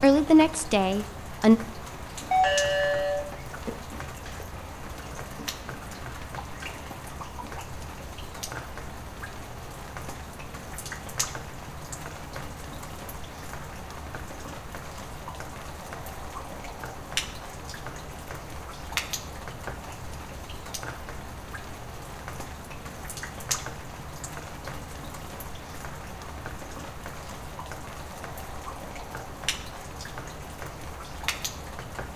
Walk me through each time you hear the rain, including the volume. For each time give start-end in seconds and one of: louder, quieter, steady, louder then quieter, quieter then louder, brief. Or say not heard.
0.0-32.1 steady.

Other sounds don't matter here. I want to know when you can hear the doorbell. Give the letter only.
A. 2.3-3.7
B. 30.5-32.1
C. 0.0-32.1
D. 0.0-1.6
A.